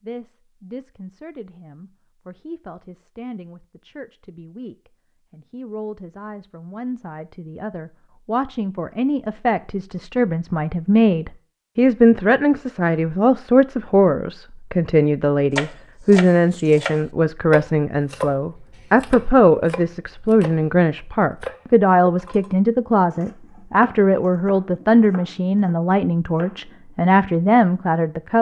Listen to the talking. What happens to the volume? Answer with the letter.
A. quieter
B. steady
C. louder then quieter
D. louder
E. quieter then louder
D.